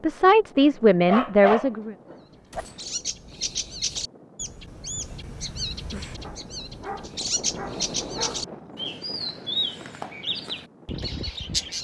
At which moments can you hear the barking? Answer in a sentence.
You can hear the barking from 0.6 to 2.6 s and from 6.2 to 8.4 s.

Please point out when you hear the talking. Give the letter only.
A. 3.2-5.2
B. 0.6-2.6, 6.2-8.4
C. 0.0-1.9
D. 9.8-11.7
C.